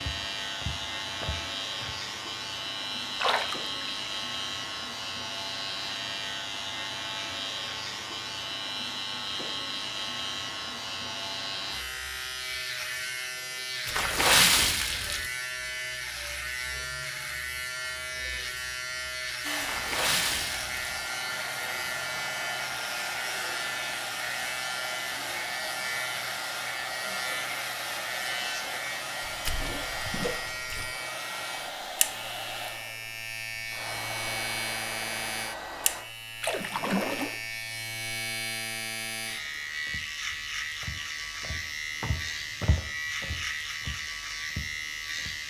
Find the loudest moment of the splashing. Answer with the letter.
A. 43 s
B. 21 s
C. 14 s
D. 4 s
C.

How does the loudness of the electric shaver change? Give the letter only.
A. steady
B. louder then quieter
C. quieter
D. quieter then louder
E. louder
A.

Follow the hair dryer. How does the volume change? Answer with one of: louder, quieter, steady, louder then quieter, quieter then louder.
steady.